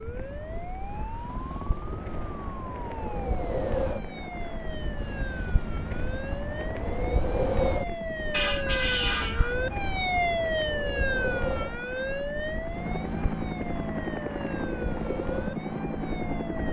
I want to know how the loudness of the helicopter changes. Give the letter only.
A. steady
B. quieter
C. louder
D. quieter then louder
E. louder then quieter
C.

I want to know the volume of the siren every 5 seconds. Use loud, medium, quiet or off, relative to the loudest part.
medium, loud, loud, medium.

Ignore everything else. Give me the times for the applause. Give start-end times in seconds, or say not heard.
not heard.